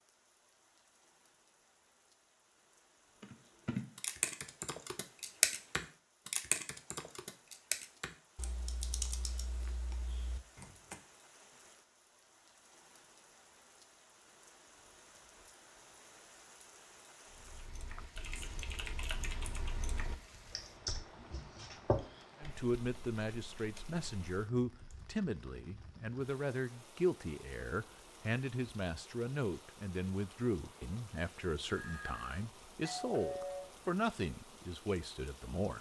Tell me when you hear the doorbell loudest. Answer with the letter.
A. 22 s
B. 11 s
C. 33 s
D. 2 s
C.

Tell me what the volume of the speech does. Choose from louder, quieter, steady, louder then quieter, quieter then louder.
steady.